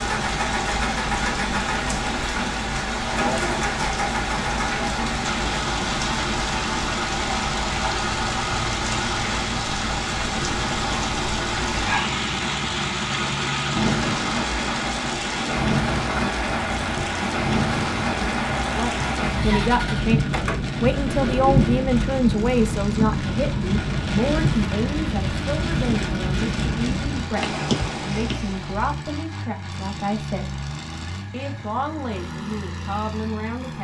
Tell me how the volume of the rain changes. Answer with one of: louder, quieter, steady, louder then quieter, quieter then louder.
steady.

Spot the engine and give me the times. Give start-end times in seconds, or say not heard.
0.0-33.7.